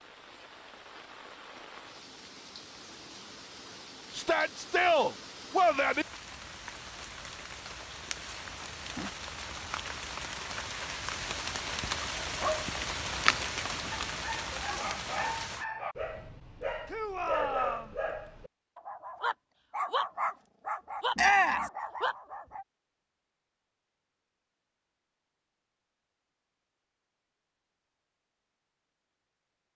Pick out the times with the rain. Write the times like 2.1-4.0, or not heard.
0.0-15.7.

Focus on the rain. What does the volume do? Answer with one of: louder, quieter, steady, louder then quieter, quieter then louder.
louder.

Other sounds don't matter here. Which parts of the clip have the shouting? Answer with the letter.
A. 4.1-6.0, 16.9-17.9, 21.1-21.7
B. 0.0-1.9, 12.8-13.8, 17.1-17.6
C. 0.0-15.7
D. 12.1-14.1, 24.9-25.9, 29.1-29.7
A.